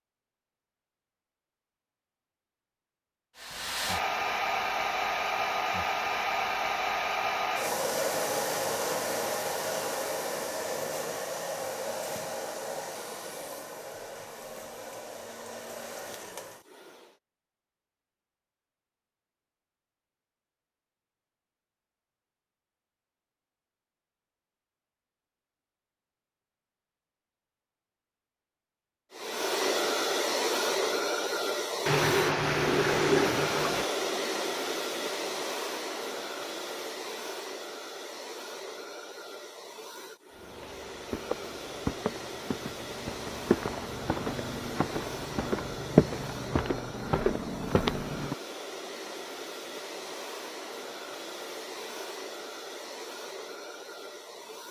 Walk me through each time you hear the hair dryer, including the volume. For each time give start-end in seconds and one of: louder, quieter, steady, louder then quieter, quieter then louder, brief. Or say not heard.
3.4-17.1 quieter
29.1-54.6 quieter.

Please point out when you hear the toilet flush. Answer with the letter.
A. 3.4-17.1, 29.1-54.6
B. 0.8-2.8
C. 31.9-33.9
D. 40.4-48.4
C.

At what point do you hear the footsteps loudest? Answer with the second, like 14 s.
46 s.